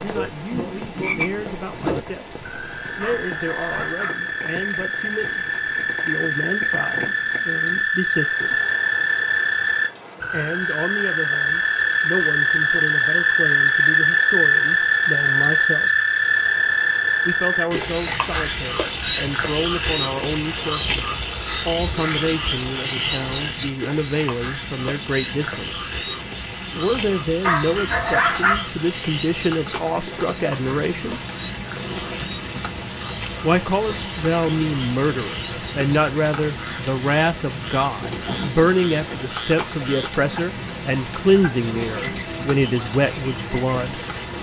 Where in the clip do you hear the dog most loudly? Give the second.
28 s.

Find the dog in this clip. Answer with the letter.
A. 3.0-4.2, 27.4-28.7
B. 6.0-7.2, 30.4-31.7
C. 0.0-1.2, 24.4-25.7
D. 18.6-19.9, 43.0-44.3
A.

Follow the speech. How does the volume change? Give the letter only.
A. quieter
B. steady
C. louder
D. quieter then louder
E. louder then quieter
C.